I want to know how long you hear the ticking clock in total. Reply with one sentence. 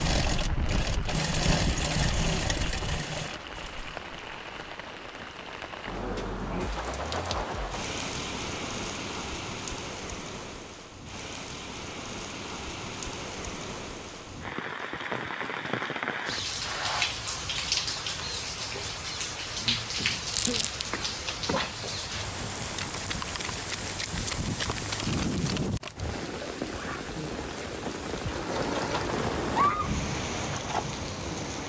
You can't hear the ticking clock here.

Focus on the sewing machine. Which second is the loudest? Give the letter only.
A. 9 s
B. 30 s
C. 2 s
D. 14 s
C.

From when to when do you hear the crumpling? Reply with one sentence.
The crumpling can be heard from 20.3 to 20.9 s.